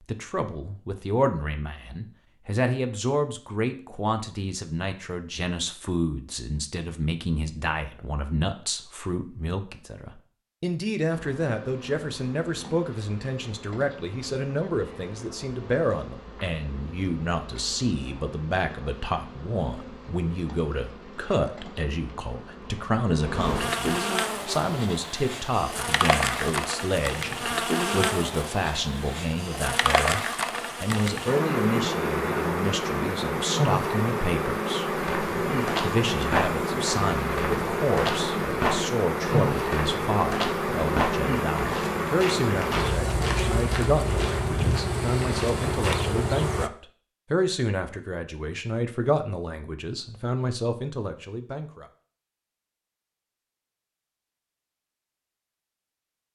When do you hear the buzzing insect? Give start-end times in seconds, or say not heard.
11.1-46.7.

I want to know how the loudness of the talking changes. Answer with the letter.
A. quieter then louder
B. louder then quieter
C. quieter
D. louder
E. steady
E.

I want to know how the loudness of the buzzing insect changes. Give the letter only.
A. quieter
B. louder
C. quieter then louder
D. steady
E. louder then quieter
B.